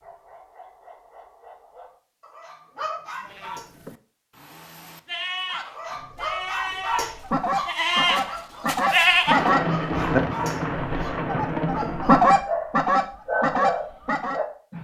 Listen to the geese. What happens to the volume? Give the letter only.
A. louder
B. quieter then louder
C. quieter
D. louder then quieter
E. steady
A.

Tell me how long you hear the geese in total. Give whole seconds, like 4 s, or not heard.
9 s.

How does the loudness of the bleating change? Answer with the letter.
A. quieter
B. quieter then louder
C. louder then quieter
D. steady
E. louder
E.